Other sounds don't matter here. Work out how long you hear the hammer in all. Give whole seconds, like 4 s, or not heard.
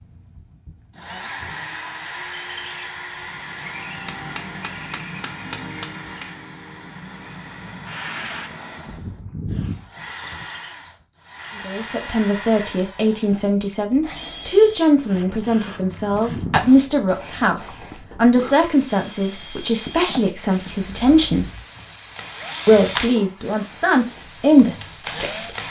2 s.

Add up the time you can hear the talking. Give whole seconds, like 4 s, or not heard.
13 s.